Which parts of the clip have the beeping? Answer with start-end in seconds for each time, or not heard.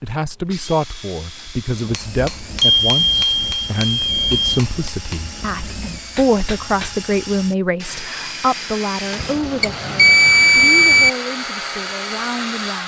2.6-4.5, 9.2-11.1.